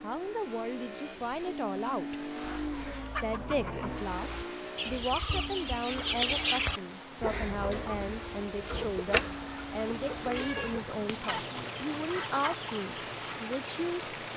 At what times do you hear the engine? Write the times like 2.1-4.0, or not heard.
0.0-14.3.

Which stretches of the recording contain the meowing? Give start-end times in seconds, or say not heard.
9.9-12.3.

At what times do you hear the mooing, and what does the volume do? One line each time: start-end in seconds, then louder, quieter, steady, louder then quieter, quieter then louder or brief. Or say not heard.
not heard.